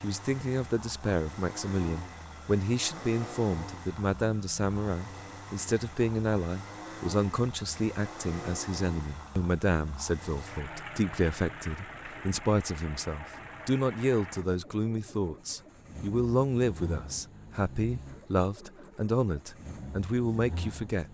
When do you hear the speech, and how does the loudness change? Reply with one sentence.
You can hear the speech from 0.0 to 21.1 s, at a steady volume.